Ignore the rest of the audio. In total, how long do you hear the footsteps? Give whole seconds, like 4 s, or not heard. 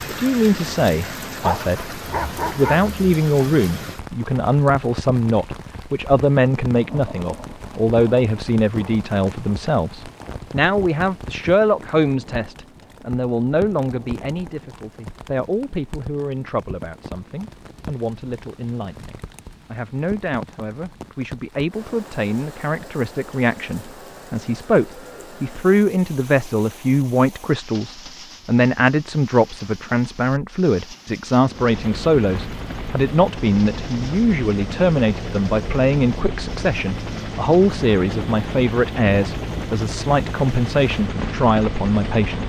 not heard.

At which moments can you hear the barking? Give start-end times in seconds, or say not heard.
1.4-2.9.